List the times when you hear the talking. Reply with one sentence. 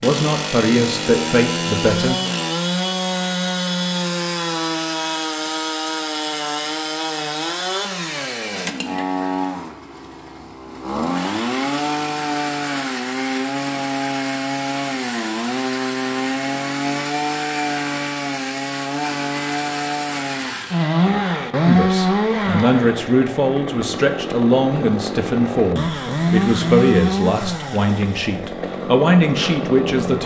The talking can be heard from 0.0 to 2.2 s and from 21.6 to 30.2 s.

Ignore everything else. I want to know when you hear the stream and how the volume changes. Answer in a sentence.
The stream can't be heard in this clip.